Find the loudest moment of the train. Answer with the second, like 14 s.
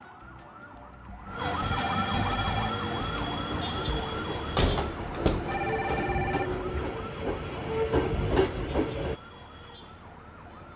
8 s.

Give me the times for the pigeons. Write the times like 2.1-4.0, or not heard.
not heard.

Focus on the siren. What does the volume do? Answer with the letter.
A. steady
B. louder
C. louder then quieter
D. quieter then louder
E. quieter
E.